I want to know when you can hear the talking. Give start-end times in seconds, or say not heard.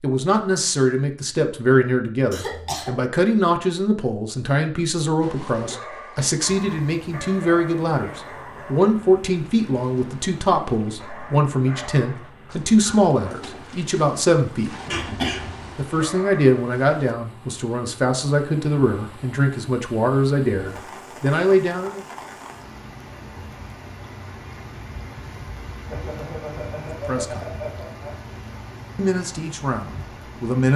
0.0-14.7, 15.8-22.0, 26.9-27.5, 28.9-30.7.